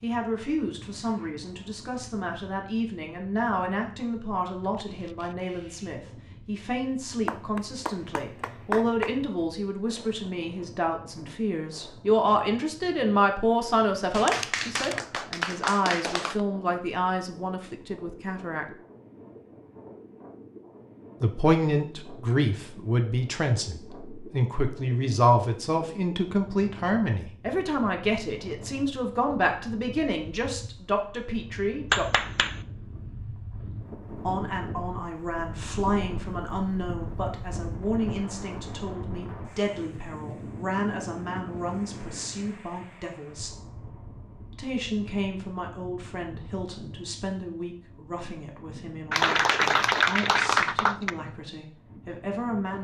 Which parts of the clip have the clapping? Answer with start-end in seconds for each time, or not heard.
7.2-9.2, 14.1-16.4, 31.9-32.6, 49.1-51.1.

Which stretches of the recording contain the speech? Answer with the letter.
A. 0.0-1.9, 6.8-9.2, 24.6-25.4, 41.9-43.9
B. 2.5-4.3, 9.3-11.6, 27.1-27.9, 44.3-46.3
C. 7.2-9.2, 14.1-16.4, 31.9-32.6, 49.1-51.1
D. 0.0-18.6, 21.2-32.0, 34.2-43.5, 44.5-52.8
D.